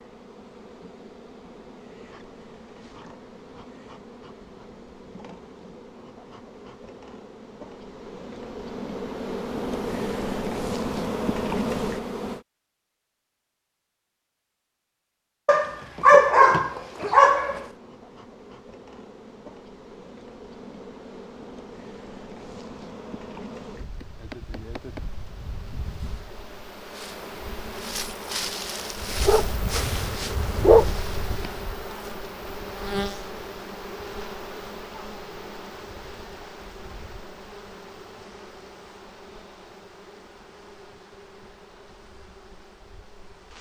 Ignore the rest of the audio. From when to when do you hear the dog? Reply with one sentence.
You can hear the dog from 15.4 to 17.6 s and from 29.2 to 31.0 s.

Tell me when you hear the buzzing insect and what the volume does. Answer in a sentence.
You can hear the buzzing insect from 0.0 to 12.4 s, getting louder; and from 17.4 to 43.5 s, getting louder then quieter.